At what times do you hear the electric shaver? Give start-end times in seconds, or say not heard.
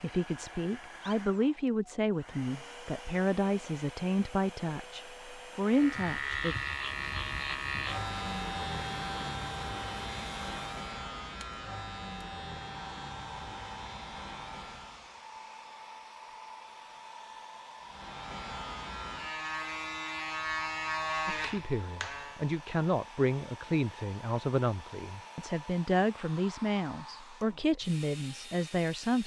5.7-15.2, 17.8-22.4.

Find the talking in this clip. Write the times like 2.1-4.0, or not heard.
0.0-6.5, 21.2-29.2.